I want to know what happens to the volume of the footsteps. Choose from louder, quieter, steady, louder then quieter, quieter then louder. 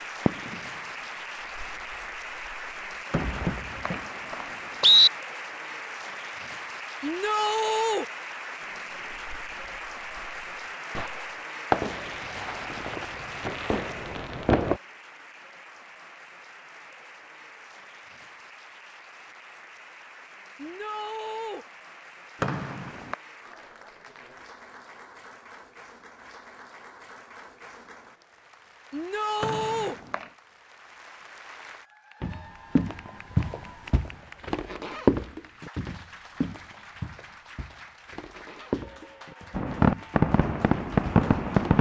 quieter then louder.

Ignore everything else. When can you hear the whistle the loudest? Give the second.
5 s.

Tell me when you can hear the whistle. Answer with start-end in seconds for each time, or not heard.
3.1-5.1, 22.4-23.1, 29.4-30.2.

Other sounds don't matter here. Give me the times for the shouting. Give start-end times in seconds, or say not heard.
7.0-8.1, 20.6-21.6, 28.9-29.9.